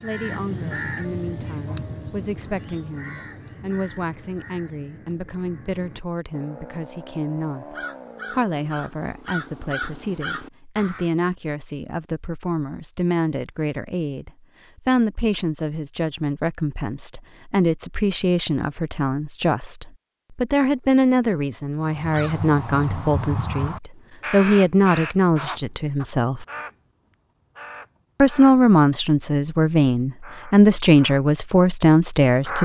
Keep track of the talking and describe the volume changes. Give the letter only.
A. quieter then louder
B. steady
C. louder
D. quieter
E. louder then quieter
C.